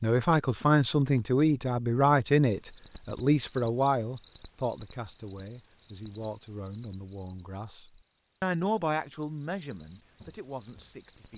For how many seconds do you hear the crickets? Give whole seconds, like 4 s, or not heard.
9 s.